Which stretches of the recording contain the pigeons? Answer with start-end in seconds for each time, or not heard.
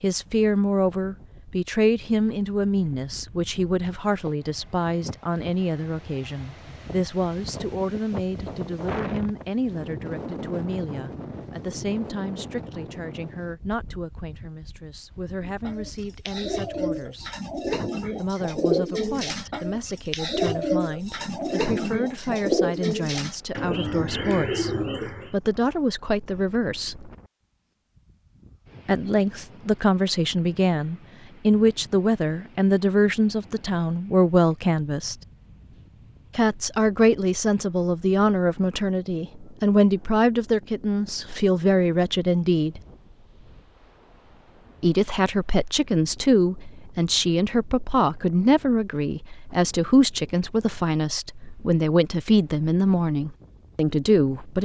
15.4-25.4.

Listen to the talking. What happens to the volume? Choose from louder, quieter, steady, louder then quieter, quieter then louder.
quieter then louder.